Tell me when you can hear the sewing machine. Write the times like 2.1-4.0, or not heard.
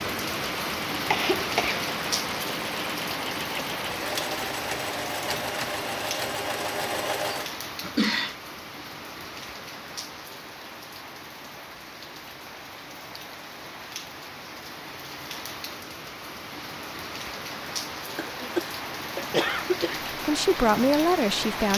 0.0-7.5.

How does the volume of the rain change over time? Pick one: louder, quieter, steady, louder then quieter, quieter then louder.
quieter then louder.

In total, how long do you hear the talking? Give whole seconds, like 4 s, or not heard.
2 s.